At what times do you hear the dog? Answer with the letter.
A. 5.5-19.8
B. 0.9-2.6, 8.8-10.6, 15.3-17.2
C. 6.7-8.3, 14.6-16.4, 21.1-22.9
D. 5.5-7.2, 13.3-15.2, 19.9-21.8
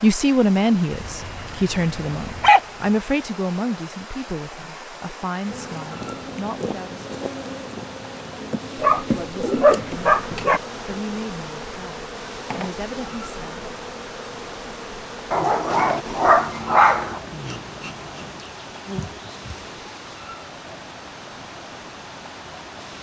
B.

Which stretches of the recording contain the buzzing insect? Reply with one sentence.
You can hear the buzzing insect from 5.5 to 19.8 s.